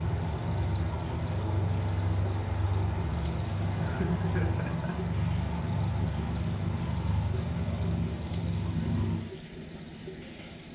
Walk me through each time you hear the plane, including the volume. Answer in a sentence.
The plane can be heard from 0.0 to 9.3 s, at a steady volume.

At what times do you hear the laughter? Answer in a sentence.
You can hear the laughter from 3.8 to 5.1 s.